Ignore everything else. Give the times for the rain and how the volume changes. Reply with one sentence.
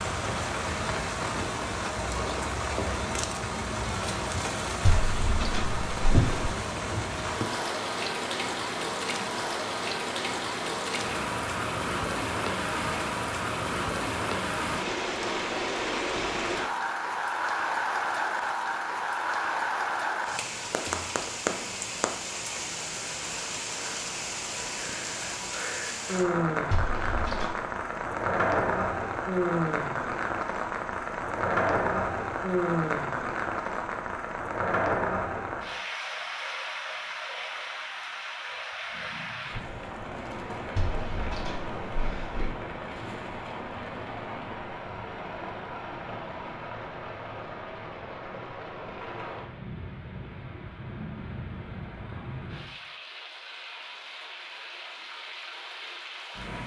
You can hear the rain from 0.0 to 56.6 s, getting quieter.